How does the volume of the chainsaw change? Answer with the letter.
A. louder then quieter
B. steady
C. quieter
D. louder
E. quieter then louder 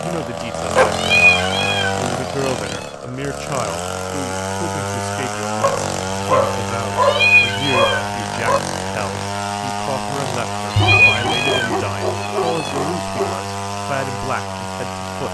B.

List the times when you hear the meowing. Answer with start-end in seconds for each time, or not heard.
0.9-2.9, 7.0-8.6, 10.7-12.8.